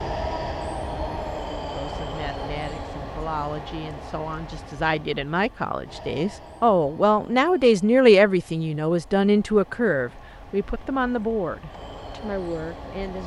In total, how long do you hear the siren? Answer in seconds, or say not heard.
not heard.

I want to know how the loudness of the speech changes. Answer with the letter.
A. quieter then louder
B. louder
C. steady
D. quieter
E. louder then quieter
E.